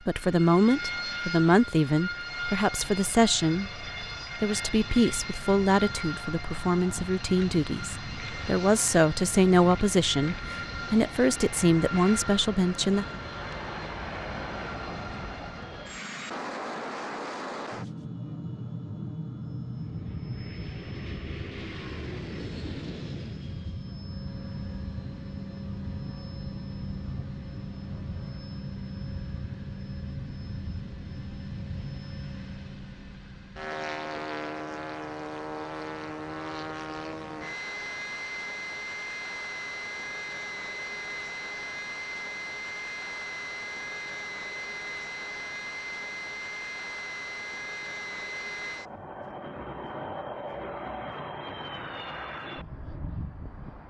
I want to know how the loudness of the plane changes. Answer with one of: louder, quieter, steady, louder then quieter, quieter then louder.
steady.